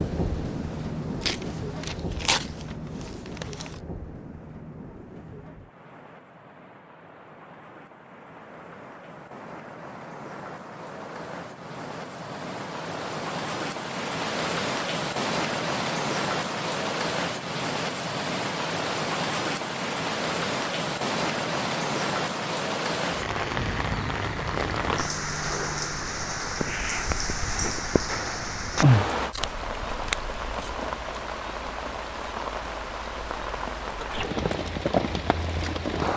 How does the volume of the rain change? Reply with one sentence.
The volume of the rain goes up.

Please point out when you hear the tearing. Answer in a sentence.
The tearing can be heard from 1.2 to 3.8 s and from 29.3 to 30.8 s.